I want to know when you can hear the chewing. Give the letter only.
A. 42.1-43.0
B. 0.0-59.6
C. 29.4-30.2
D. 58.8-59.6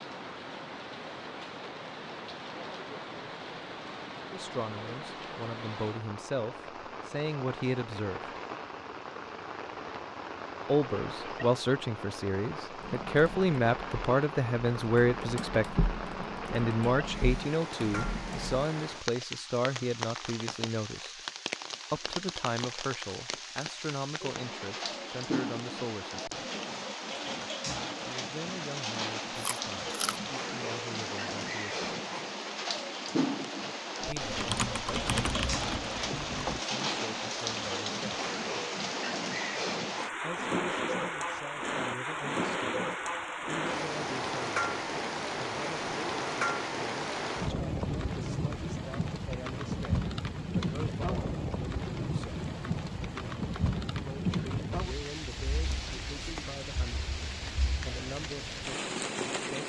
C.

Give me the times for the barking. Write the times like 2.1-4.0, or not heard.
not heard.